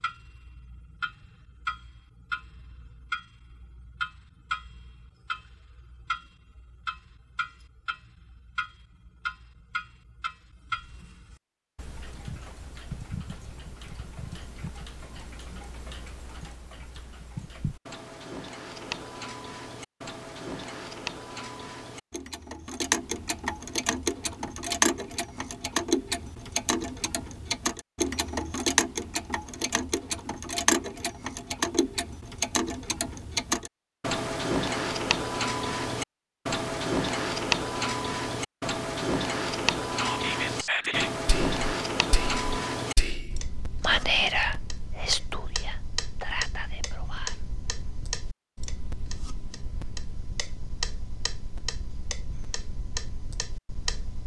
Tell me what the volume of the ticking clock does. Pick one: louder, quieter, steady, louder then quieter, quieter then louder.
louder then quieter.